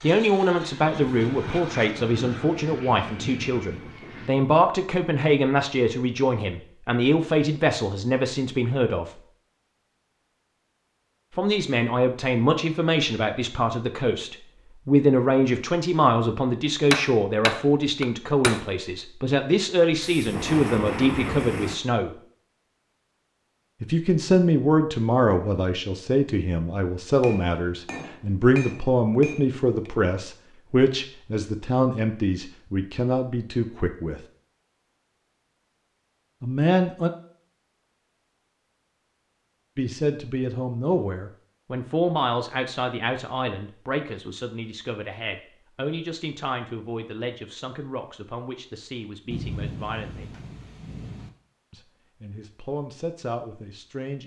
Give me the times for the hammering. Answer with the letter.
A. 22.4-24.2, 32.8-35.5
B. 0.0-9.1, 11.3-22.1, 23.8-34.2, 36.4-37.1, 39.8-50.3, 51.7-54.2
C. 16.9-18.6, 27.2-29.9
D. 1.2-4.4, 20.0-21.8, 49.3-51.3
C.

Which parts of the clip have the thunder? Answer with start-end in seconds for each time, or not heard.
1.2-4.4, 20.0-21.8, 49.3-51.3.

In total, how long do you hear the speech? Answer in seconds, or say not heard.
44 s.